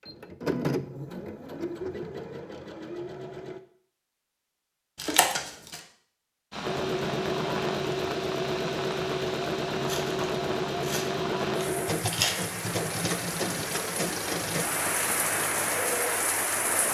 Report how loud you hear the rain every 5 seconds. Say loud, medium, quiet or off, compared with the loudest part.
off, medium, medium, loud.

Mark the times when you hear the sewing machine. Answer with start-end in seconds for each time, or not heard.
0.0-3.6, 6.6-16.8.